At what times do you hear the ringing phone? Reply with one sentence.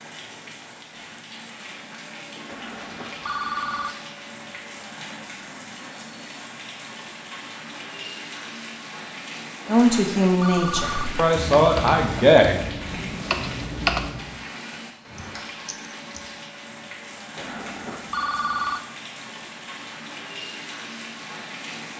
The ringing phone can be heard from 2.5 to 4.0 s, from 9.7 to 11.1 s and from 17.4 to 18.8 s.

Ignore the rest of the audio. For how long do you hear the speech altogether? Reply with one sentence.
You can hear the speech for 3 seconds altogether.